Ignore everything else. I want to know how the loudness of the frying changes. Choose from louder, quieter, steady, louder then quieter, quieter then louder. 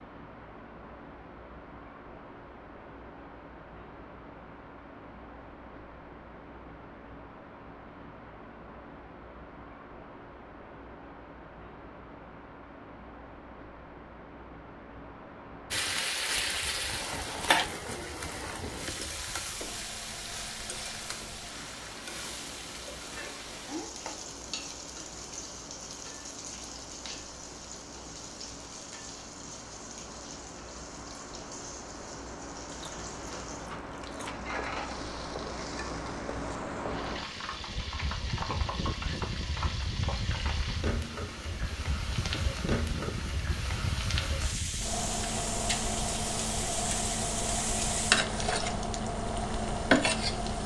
quieter then louder.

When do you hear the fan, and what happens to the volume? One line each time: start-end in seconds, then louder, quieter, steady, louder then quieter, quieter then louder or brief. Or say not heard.
0.0-50.6 louder.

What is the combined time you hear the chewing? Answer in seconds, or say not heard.
2 s.